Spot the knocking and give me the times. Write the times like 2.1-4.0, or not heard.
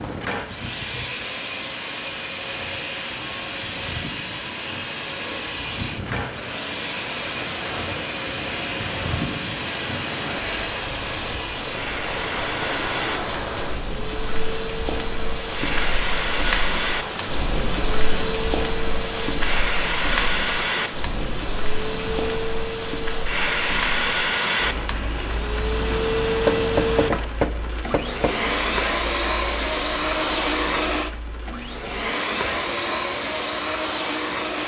26.4-28.4.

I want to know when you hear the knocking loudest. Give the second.
27 s.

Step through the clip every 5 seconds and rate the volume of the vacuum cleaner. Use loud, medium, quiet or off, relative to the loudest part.
medium, medium, medium, loud, loud, loud, loud.